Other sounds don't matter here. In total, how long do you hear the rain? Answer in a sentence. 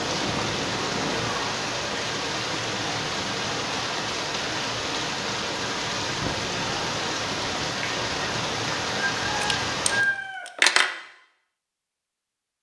The rain can be heard for 10 seconds in total.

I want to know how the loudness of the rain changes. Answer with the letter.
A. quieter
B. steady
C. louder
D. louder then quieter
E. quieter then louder
B.